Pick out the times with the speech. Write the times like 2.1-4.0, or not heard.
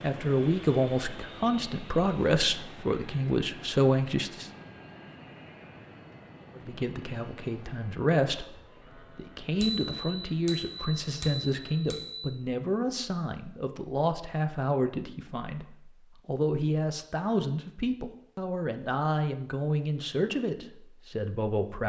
0.0-4.5, 6.5-21.8.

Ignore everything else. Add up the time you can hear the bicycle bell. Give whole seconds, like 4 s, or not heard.
3 s.